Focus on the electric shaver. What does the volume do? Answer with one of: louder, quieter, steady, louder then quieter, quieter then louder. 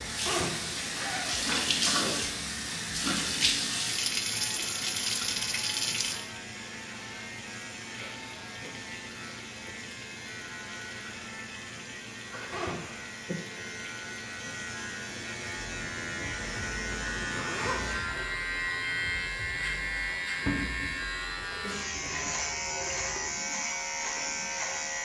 louder.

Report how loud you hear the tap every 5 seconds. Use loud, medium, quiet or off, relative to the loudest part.
loud, medium, quiet, quiet, medium.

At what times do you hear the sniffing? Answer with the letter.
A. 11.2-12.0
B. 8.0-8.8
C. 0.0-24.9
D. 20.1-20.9
B.